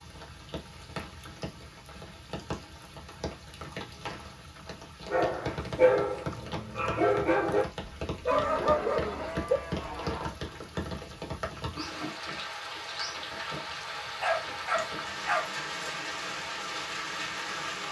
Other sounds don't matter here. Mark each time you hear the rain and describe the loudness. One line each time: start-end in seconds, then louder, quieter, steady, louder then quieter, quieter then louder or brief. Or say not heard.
0.0-17.8 louder.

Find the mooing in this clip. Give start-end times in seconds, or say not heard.
8.3-10.3.